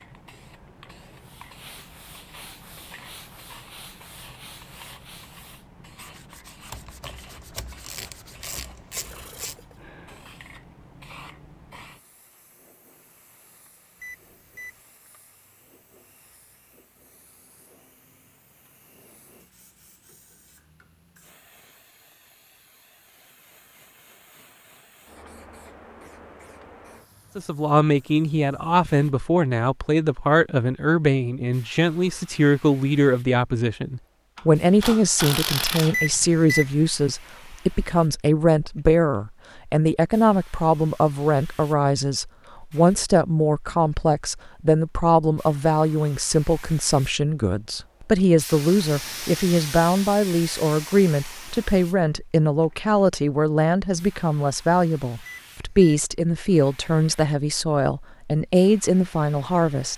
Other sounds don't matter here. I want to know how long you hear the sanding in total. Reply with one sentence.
You can hear the sanding for 9 seconds altogether.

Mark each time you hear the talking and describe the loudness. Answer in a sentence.
You can hear the talking from 27.4 to 59.9 s, at a steady volume.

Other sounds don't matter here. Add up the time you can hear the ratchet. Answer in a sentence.
The ratchet can be heard for 5 seconds in total.